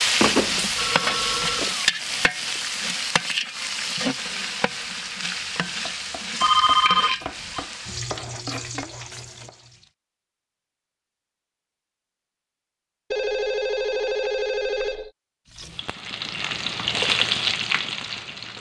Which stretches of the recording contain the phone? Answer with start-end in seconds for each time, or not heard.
0.2-1.7, 6.4-7.6, 13.1-15.1.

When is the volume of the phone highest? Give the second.
7 s.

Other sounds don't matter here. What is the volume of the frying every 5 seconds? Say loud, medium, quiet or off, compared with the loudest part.
loud, medium, off, loud.